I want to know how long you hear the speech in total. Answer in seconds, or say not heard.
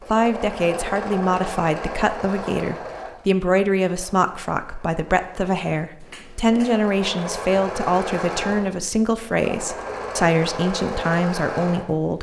12 s.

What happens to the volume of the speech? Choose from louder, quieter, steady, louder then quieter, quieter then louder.
steady.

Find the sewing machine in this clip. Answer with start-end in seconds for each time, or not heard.
0.0-12.1.